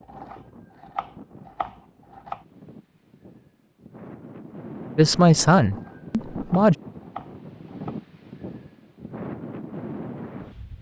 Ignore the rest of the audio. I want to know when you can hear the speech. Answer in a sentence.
The speech can be heard from 5.0 to 6.8 s.